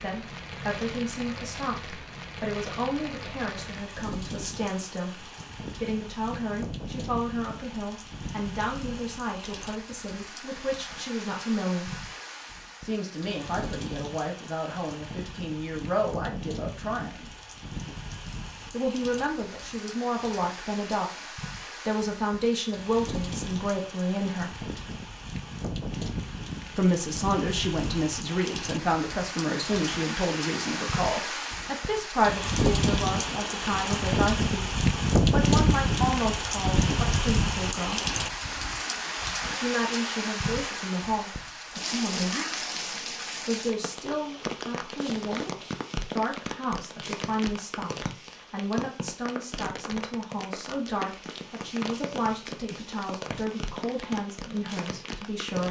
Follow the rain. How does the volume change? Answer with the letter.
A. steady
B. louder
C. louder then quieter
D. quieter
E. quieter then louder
C.